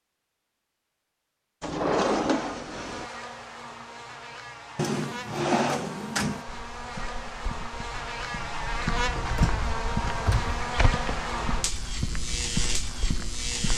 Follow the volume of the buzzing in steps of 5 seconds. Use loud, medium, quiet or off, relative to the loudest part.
medium, loud, loud.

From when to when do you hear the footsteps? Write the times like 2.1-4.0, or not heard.
6.5-13.7.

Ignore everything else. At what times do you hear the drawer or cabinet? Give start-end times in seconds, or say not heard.
1.6-3.1, 4.8-6.5, 9.2-10.6.